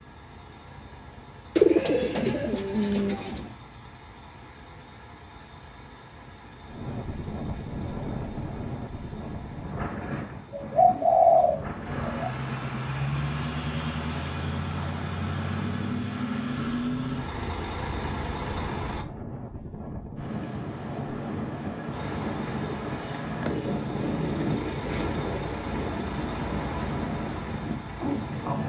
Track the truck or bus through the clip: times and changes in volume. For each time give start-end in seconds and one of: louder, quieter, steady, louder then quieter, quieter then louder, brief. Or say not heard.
0.0-19.1 louder
21.9-28.6 louder.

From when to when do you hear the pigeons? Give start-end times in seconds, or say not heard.
1.6-3.5, 10.1-12.3, 22.9-25.1.